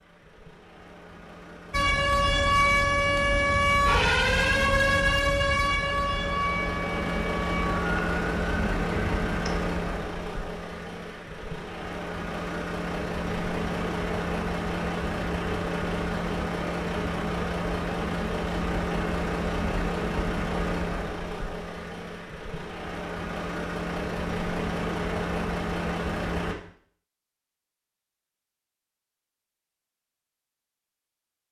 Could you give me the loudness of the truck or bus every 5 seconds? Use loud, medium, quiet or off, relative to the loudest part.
quiet, loud, loud, loud, loud, loud, off.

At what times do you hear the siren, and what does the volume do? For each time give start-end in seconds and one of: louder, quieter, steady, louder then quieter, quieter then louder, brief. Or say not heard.
1.7-9.6 quieter.